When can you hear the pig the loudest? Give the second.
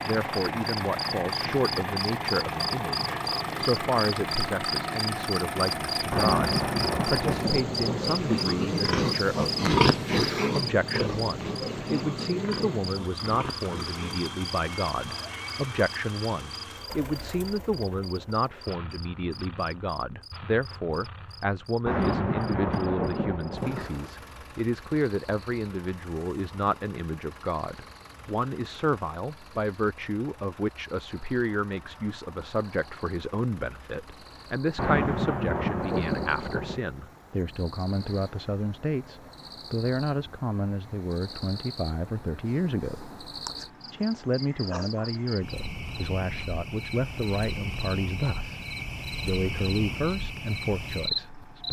10 s.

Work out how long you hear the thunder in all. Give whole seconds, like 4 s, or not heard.
6 s.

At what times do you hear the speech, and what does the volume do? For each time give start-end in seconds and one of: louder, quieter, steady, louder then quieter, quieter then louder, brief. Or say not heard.
0.0-43.1 steady
43.9-51.6 steady.